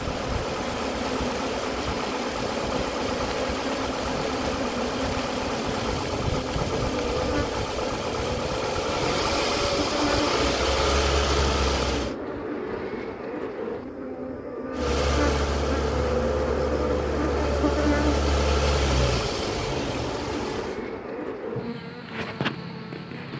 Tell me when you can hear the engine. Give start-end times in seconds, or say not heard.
0.0-12.2, 14.8-20.8.